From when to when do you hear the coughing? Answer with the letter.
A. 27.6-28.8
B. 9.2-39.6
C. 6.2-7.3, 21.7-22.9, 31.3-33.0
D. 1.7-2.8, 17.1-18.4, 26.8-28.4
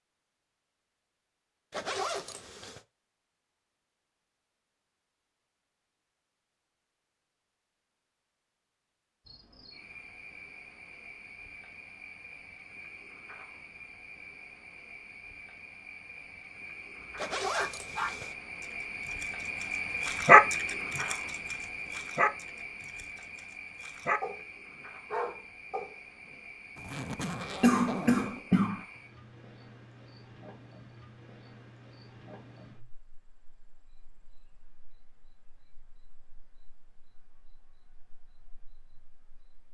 A.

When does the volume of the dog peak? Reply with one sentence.
The volume of the dog peaks at 20 seconds.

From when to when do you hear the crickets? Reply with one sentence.
You can hear the crickets from 9.2 to 39.6 s.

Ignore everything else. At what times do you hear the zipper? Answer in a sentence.
You can hear the zipper from 1.7 to 2.8 s, from 17.1 to 18.4 s and from 26.8 to 28.4 s.